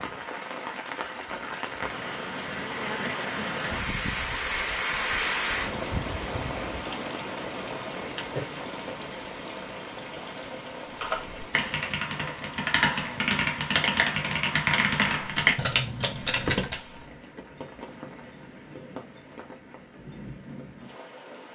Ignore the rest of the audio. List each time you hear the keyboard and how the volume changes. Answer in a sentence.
The keyboard can be heard from 11.0 to 16.8 s, getting louder.